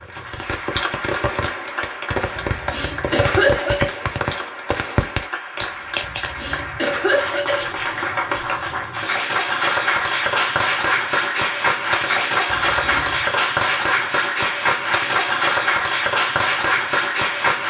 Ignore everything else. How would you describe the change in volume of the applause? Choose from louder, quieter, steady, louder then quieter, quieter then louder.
louder.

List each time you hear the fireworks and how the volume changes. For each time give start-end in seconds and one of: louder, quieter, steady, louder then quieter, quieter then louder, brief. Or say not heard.
0.0-6.3 steady.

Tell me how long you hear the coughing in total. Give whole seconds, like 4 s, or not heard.
4 s.